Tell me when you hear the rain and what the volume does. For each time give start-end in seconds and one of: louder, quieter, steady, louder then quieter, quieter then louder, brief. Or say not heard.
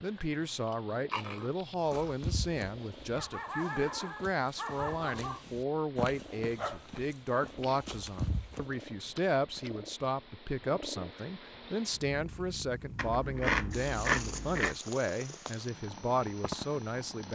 not heard.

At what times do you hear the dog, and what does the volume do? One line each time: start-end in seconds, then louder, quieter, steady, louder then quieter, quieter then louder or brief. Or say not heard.
1.9-8.8 steady.